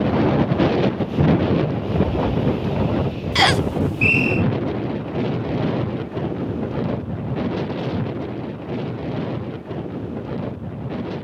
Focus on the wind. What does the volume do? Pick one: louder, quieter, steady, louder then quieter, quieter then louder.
quieter.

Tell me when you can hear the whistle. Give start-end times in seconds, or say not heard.
3.4-4.5.